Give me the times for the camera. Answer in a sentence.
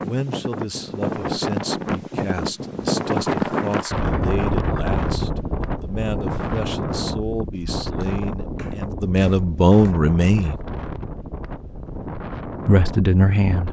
You can't hear the camera here.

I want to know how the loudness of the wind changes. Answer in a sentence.
The loudness of the wind goes down.